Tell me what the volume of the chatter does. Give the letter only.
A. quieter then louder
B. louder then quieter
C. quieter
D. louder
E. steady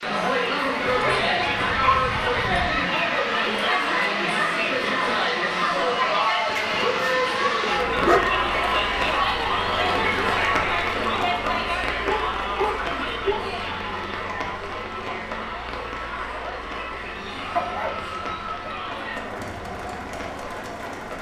C.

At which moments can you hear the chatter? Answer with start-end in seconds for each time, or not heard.
0.0-21.1.